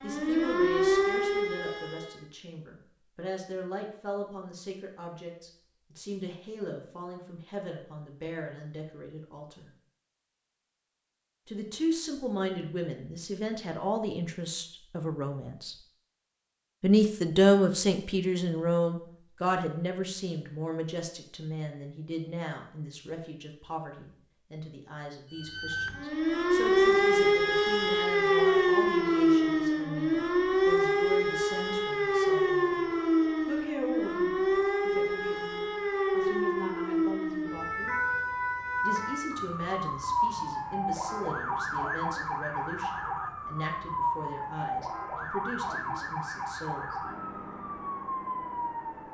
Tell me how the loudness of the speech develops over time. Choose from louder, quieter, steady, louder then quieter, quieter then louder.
louder then quieter.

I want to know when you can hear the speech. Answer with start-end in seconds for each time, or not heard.
0.0-9.7, 11.4-15.8, 16.8-38.0, 38.8-47.0.